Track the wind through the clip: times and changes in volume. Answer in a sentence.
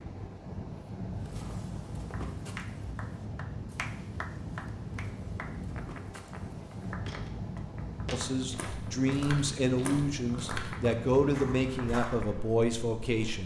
You can hear the wind from 0.0 to 13.4 s, at a steady volume.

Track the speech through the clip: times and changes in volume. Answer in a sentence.
The speech can be heard from 8.1 to 13.4 s, at a steady volume.